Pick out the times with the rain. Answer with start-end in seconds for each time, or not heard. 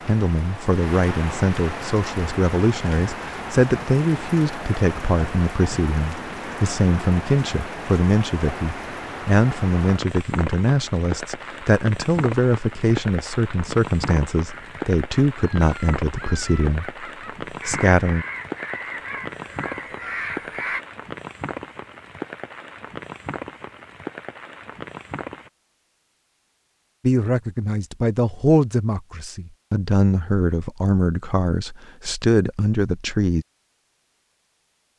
0.0-25.5.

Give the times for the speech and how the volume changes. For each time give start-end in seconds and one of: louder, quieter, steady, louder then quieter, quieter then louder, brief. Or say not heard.
0.1-18.2 steady
27.0-33.5 steady.